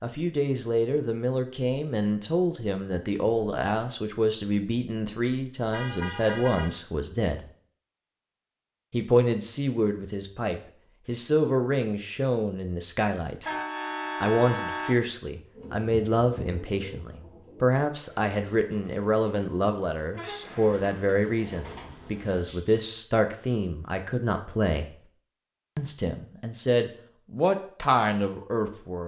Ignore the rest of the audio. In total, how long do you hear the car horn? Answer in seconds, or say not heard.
3 s.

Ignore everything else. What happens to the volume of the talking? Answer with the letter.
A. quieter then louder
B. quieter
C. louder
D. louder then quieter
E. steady
E.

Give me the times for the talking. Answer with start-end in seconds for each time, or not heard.
0.0-7.4, 8.9-13.4, 14.2-24.9, 25.8-29.0.